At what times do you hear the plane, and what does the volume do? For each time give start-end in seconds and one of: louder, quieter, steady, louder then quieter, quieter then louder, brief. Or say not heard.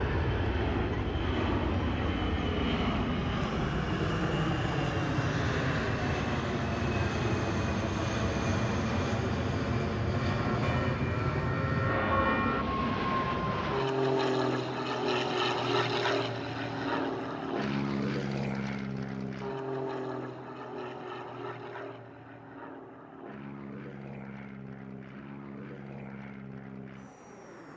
0.0-27.7 quieter.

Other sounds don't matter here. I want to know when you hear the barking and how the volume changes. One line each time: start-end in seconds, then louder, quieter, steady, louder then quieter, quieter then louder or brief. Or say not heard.
not heard.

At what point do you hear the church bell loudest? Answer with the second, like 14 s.
12 s.